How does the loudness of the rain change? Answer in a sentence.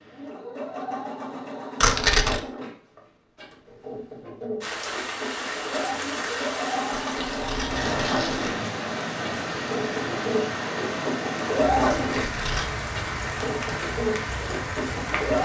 The volume of the rain stays about the same.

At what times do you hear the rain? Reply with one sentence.
The rain can be heard from 4.6 to 15.4 s.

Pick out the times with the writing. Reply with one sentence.
You can't hear the writing here.